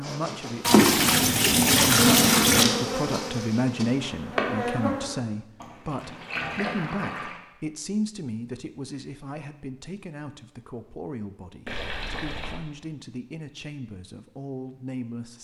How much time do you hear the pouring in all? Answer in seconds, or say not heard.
5 s.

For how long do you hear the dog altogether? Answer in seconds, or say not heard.
not heard.